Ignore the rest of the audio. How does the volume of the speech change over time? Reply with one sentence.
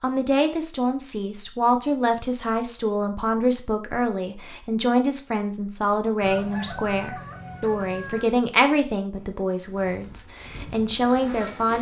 The loudness of the speech stays about the same.